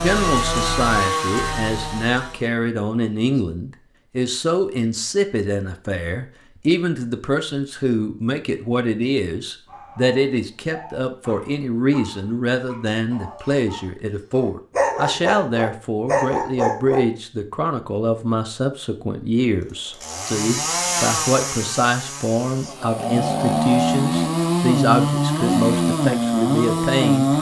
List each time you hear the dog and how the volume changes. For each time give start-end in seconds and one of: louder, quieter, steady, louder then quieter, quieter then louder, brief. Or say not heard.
9.7-17.1 louder.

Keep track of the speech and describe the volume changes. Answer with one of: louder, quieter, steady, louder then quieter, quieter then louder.
steady.